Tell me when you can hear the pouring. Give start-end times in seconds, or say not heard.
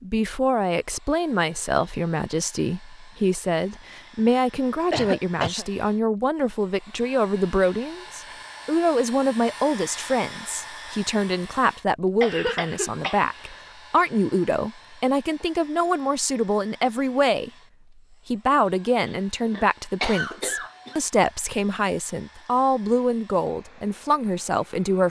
not heard.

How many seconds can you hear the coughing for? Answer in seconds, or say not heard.
4 s.